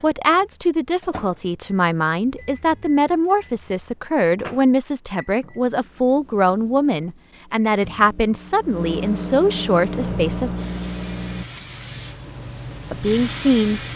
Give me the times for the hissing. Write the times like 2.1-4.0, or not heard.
9.7-13.9.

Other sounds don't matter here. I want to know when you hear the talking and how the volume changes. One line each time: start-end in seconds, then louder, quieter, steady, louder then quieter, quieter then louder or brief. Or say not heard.
0.0-10.5 steady
12.9-13.8 brief.